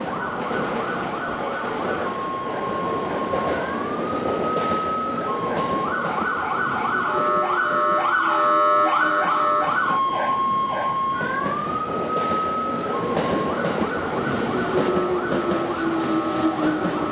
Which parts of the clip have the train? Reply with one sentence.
You can hear the train from 0.0 to 17.0 s.